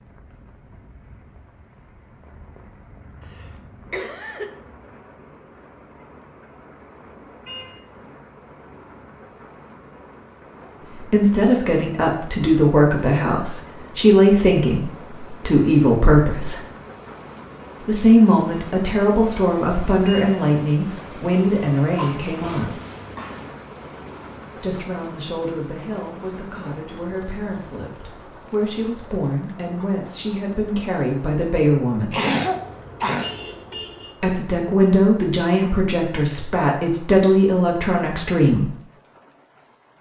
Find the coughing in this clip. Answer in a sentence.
You can hear the coughing from 3.2 to 4.5 s, from 21.9 to 23.4 s and from 32.1 to 33.8 s.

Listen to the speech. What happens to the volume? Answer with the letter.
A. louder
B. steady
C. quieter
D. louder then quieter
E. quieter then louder
E.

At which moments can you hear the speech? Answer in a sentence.
You can hear the speech from 10.9 to 16.6 s, from 17.8 to 22.8 s, from 24.6 to 32.2 s and from 34.2 to 38.7 s.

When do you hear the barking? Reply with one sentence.
You can't hear the barking here.